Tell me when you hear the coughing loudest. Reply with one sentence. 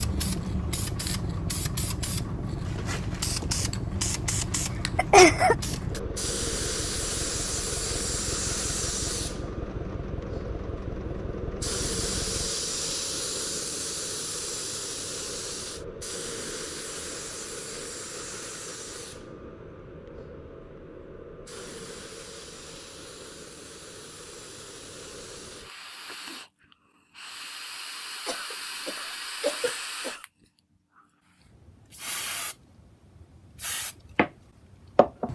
The volume of the coughing peaks at 5 seconds.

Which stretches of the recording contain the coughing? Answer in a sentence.
You can hear the coughing from 5.0 to 5.5 s and from 28.2 to 30.2 s.